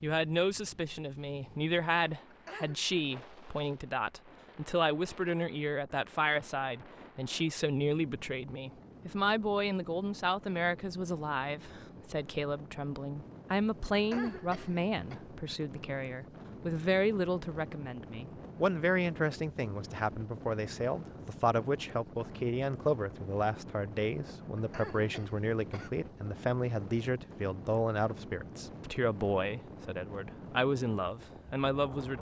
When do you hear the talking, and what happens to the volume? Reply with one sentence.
The talking can be heard from 0.0 to 32.1 s, at a steady volume.